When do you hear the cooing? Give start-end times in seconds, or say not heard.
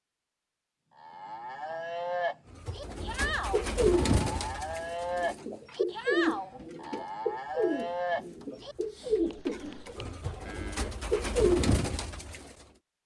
2.5-12.6.